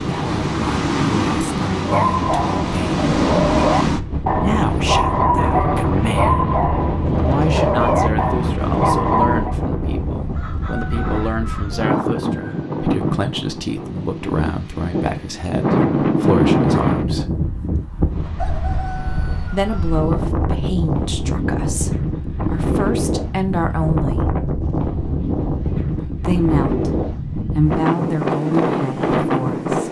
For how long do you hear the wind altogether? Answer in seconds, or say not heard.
30 s.